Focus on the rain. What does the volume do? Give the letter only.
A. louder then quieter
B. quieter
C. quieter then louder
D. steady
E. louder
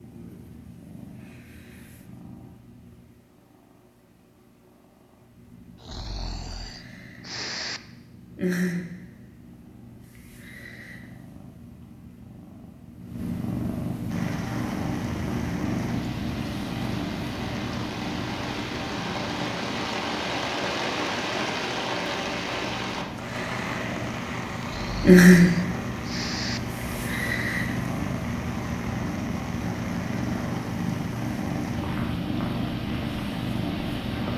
A.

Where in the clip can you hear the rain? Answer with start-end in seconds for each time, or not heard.
14.1-34.3.